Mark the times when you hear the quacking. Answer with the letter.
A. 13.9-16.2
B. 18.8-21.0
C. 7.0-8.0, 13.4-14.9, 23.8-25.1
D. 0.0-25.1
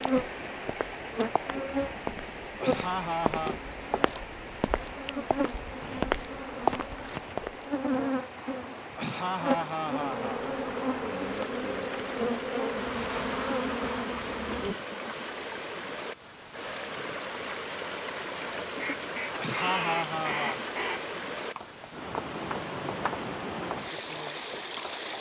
B.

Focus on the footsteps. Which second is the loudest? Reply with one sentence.
The volume of the footsteps peaks at 7 seconds.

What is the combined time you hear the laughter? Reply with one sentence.
You can hear the laughter for 4 seconds altogether.